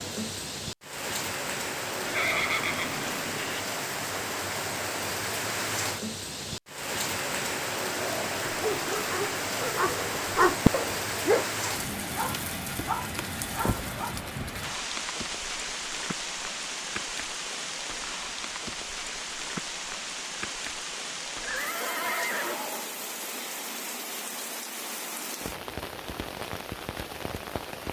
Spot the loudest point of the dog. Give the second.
11 s.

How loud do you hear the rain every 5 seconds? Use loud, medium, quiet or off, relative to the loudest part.
loud, loud, loud, loud, medium, medium.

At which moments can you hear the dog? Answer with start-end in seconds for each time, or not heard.
8.4-14.2.